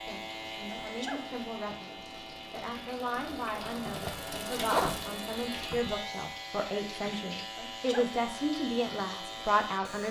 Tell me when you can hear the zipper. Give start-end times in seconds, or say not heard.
3.1-5.9.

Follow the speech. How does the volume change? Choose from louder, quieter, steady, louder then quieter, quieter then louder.
louder.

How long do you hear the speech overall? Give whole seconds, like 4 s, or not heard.
10 s.